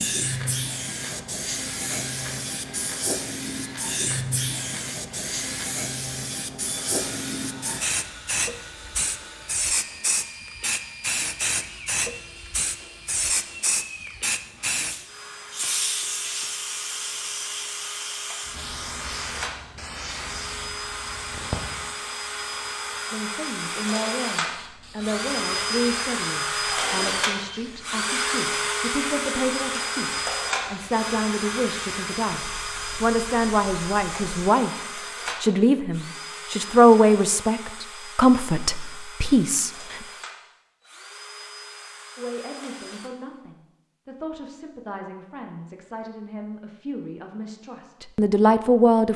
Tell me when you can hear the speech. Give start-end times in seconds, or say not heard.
23.1-40.0, 42.1-49.1.